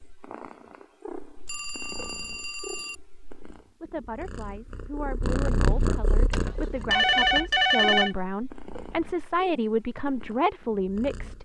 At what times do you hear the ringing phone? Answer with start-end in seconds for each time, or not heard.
1.4-3.0, 6.3-8.2.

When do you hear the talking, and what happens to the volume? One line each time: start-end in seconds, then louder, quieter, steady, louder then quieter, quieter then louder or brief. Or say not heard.
3.8-11.4 louder.